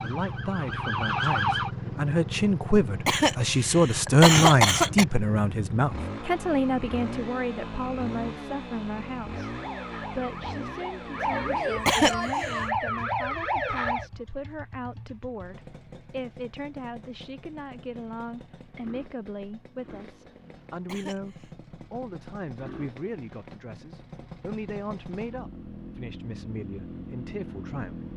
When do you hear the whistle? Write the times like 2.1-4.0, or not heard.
not heard.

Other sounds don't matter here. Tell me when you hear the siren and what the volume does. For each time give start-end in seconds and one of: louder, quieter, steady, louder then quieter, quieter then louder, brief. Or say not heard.
0.0-1.7 brief
9.3-14.1 louder.